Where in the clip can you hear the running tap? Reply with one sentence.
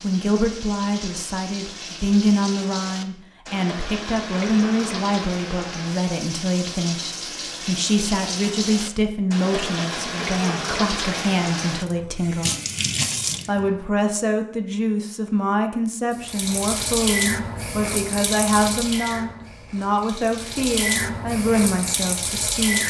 The running tap can be heard from 0.0 to 13.8 s and from 16.1 to 22.8 s.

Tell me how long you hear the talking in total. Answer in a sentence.
You can hear the talking for 22 seconds altogether.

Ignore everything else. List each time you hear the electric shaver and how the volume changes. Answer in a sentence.
You can't hear the electric shaver here.